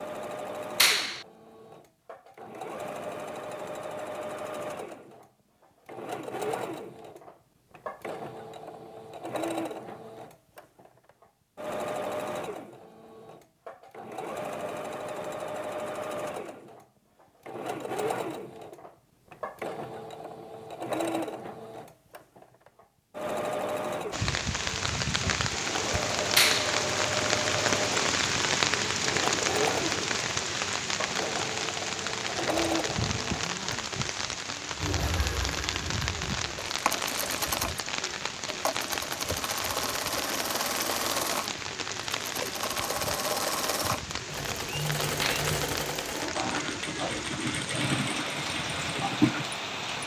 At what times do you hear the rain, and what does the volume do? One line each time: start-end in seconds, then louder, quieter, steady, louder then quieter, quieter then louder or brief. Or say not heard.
24.1-50.0 quieter.